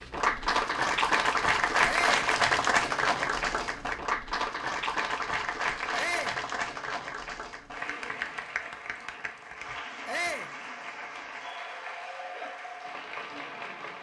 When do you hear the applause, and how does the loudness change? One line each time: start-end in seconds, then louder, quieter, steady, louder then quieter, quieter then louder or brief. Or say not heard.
0.0-13.9 quieter.